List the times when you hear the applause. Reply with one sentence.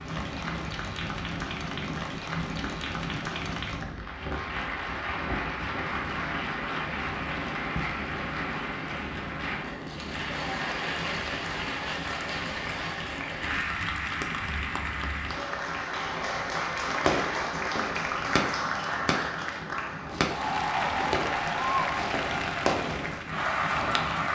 You can hear the applause from 0.0 to 24.2 s.